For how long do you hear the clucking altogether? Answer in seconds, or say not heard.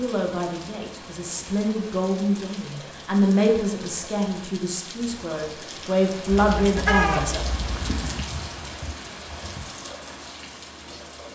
2 s.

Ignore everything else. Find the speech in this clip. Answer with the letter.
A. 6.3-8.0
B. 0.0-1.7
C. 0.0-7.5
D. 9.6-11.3
C.